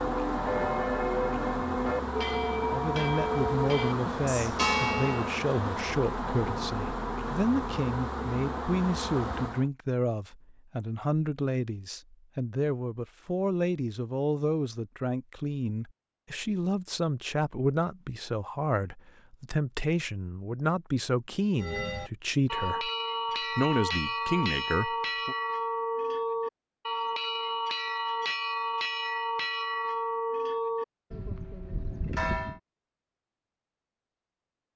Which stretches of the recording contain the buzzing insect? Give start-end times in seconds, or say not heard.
0.0-9.7.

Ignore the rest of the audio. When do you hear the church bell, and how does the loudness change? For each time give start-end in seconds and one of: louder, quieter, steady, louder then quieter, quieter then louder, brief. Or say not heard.
0.0-5.3 steady
21.6-32.6 steady.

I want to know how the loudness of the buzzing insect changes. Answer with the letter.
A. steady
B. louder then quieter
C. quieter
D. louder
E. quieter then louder
A.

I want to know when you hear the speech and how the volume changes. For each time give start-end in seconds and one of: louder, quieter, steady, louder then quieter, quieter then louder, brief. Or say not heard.
2.7-22.9 steady
23.6-25.4 brief.